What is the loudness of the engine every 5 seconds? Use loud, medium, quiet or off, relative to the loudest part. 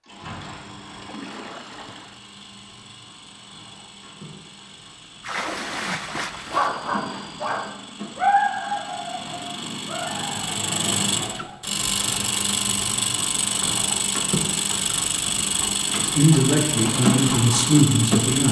quiet, quiet, loud, loud.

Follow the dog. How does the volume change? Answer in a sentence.
The loudness of the dog goes up, then down.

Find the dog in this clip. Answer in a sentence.
The dog can be heard from 6.4 to 11.7 s.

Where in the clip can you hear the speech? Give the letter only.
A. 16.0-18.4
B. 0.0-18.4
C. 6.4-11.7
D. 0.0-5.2
A.